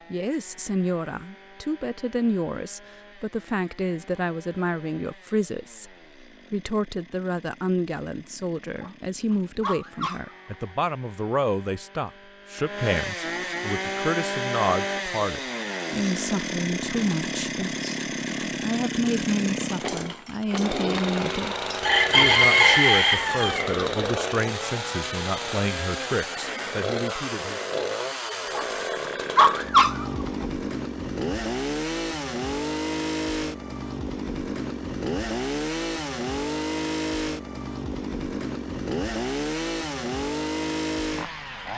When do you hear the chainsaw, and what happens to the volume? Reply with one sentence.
You can hear the chainsaw from 0.0 to 41.7 s, getting louder.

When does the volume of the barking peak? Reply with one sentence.
The volume of the barking peaks at 30 seconds.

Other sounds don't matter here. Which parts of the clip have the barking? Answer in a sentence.
The barking can be heard from 8.8 to 10.5 s and from 28.6 to 30.4 s.